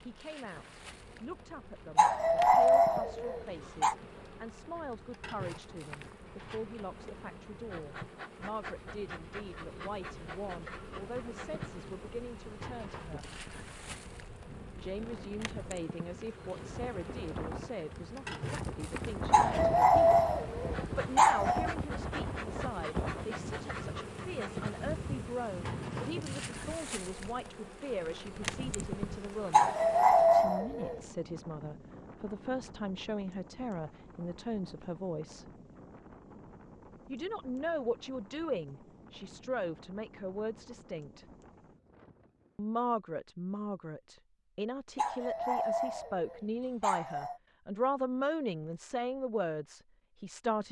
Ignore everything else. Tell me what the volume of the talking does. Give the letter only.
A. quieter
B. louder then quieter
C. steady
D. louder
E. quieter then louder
D.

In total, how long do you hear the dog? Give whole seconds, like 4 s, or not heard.
8 s.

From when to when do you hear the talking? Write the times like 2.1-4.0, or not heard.
0.0-13.2, 14.8-20.2, 20.9-29.7, 30.3-35.5, 37.0-41.2, 42.5-50.6.